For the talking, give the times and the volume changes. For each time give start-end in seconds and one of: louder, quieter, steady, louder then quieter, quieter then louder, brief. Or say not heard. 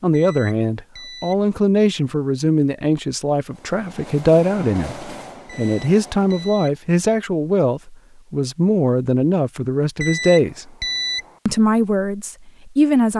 0.0-10.7 steady
11.4-13.1 brief.